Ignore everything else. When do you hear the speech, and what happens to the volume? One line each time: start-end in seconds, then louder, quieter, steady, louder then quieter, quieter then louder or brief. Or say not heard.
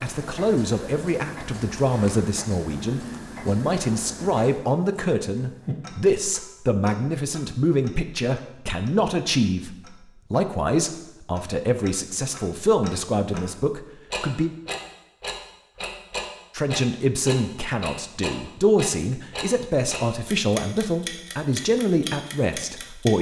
0.0-14.5 steady
16.6-23.1 steady.